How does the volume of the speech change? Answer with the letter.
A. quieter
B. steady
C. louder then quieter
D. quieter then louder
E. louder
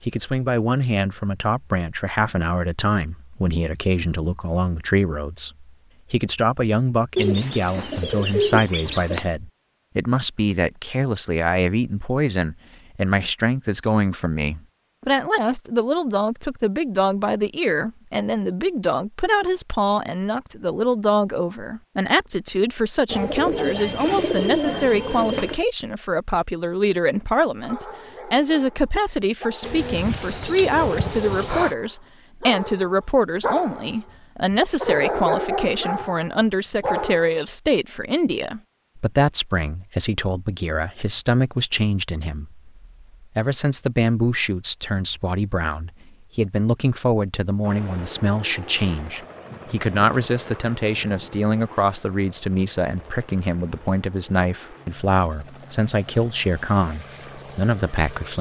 B.